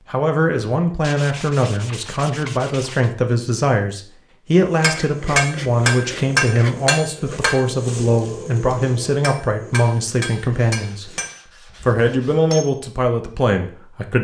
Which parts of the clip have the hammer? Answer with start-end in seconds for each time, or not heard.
4.8-12.8.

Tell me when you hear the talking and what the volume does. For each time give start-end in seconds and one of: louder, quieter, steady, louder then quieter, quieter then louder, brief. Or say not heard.
0.1-11.1 steady
11.8-14.2 brief.